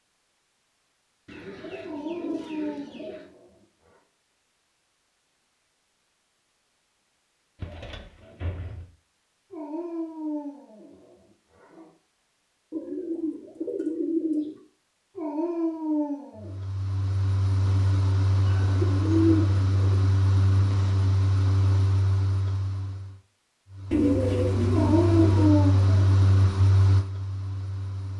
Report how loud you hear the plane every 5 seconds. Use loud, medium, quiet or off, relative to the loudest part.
off, off, off, loud, loud, loud.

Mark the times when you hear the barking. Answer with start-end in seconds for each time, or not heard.
1.8-4.0, 9.5-11.9, 15.2-16.6, 24.7-26.3.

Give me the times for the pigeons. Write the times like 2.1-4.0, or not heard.
1.2-3.2, 7.5-8.8, 12.7-14.6, 18.4-20.1, 23.9-25.6.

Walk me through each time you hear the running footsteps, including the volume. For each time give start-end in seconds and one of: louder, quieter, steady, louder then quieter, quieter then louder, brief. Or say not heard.
not heard.